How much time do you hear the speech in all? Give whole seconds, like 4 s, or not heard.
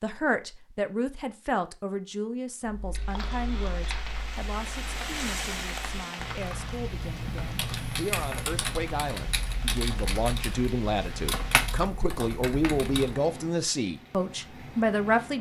15 s.